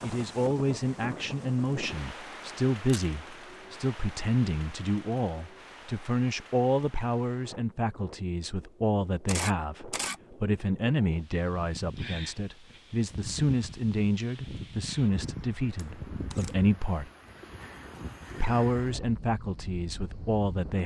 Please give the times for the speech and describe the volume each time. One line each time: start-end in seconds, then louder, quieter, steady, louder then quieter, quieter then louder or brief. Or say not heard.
0.0-17.1 steady
18.4-20.8 brief.